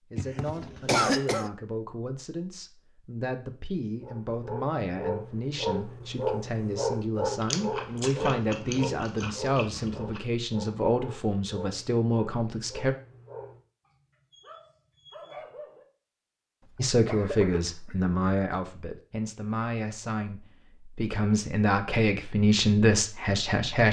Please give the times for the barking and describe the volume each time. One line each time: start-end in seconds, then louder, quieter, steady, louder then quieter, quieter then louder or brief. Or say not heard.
4.0-15.8 quieter.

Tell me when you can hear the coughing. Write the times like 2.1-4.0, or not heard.
0.1-1.5, 16.6-17.9.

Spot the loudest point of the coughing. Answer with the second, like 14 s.
1 s.